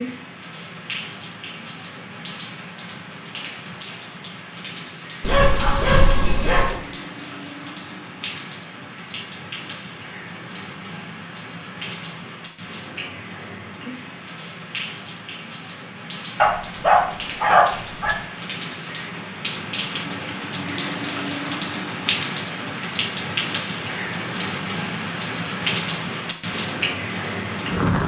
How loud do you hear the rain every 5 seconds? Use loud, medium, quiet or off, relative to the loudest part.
medium, medium, medium, medium, loud, loud.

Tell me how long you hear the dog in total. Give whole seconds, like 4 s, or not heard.
3 s.